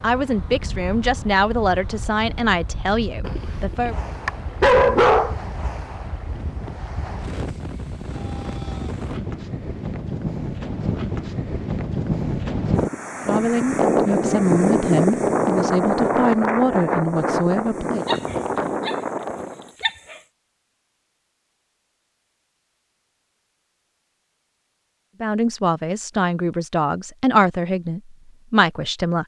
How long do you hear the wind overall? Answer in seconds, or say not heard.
20 s.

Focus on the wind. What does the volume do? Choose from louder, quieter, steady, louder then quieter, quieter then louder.
louder.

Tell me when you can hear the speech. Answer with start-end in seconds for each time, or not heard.
0.0-4.0, 13.2-18.1, 25.2-29.2.